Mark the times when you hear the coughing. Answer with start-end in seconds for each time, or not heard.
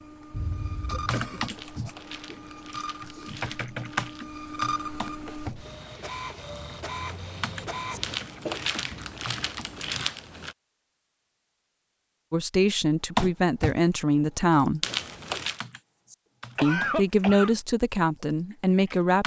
0.3-1.5, 8.1-9.9, 16.6-17.6.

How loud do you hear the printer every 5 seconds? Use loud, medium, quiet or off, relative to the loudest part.
loud, loud, off, off.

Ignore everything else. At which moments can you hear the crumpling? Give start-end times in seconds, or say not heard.
1.4-4.2, 8.0-10.6, 14.8-15.6.